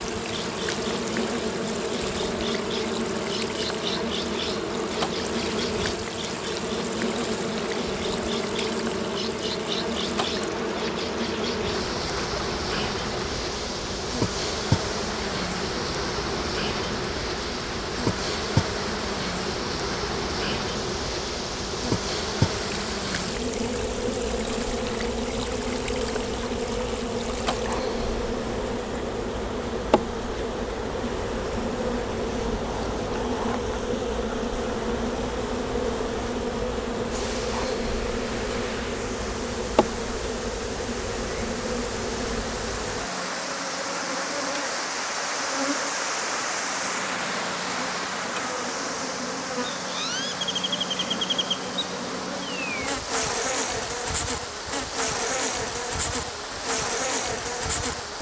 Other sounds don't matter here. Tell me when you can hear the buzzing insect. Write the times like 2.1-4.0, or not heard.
0.0-58.1.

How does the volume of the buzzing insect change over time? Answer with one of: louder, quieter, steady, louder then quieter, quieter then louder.
steady.